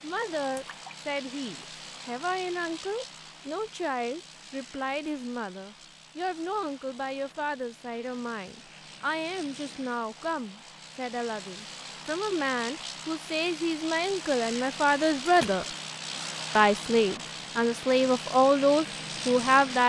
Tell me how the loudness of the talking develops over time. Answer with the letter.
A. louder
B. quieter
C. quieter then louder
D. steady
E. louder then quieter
A.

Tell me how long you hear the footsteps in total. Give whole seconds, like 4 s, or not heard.
not heard.